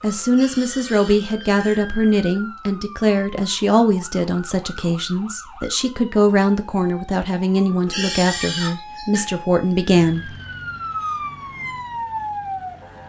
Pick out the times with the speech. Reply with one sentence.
You can hear the speech from 0.0 to 10.3 s.